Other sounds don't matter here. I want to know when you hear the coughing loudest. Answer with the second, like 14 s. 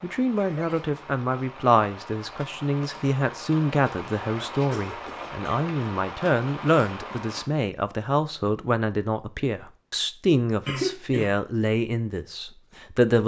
11 s.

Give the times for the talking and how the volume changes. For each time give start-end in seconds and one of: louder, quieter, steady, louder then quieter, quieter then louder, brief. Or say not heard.
0.0-13.2 steady.